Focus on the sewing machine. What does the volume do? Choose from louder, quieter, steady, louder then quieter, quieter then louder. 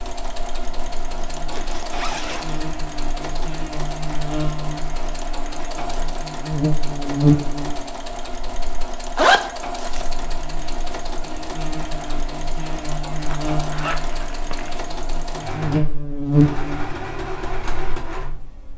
steady.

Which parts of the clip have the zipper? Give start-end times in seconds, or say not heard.
1.5-2.6, 9.2-10.1, 13.3-14.8.